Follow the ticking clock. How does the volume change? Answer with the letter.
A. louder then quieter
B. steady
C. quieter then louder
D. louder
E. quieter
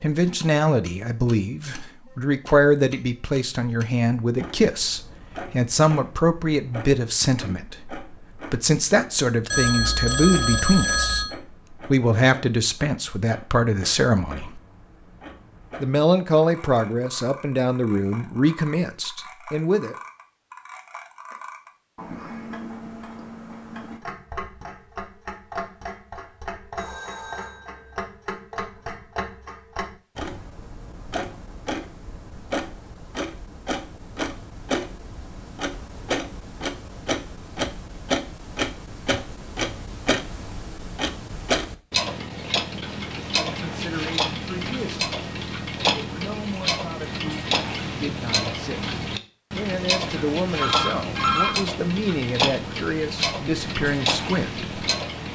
D.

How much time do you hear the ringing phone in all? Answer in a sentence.
The ringing phone can be heard for 4 seconds in total.